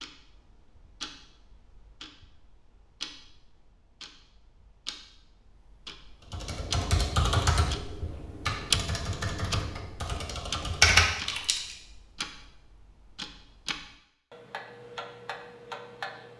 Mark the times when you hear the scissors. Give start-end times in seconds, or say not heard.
not heard.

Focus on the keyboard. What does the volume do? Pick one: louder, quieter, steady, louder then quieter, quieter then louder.
quieter then louder.